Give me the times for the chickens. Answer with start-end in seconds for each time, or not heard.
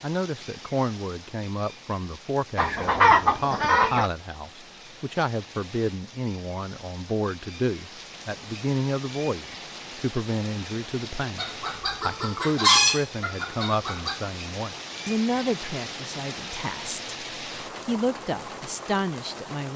2.5-4.1, 11.3-14.2.